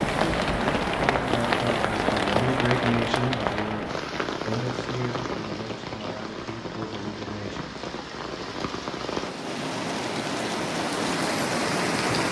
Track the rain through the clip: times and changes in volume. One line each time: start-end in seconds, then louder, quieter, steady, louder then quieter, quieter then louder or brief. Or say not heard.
0.0-12.2 quieter then louder.